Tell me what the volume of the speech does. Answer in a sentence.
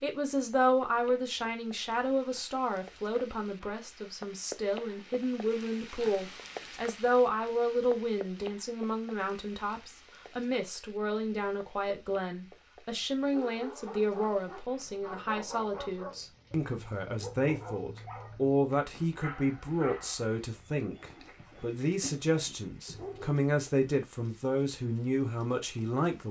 The volume of the speech stays about the same.